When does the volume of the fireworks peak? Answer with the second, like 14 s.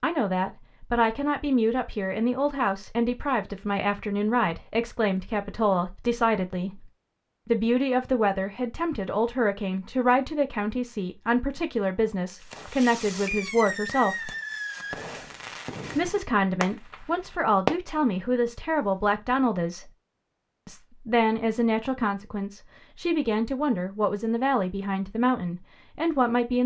18 s.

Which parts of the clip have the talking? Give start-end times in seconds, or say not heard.
0.0-14.3, 15.9-19.9, 20.6-26.6.